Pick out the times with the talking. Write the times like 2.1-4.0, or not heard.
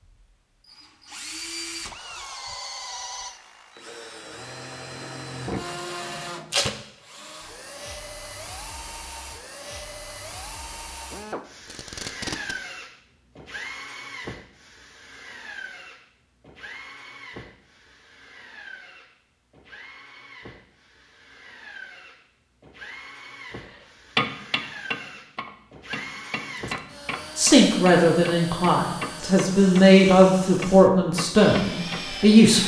27.4-32.6.